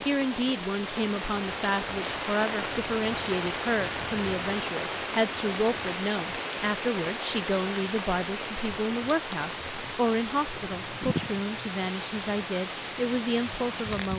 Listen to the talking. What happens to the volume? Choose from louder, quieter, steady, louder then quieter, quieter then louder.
steady.